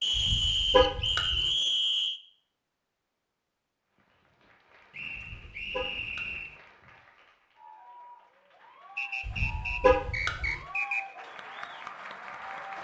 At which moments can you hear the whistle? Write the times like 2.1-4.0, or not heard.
0.0-2.2, 4.9-6.6, 8.9-11.1.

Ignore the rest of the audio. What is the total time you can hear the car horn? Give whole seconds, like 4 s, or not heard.
4 s.